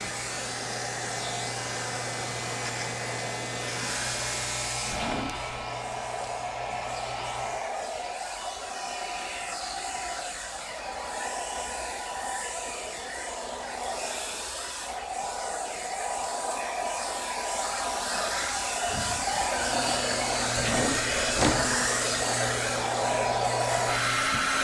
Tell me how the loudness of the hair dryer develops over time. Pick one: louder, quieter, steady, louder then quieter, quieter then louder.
louder.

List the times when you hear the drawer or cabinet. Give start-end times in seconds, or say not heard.
4.9-5.5, 20.6-21.9.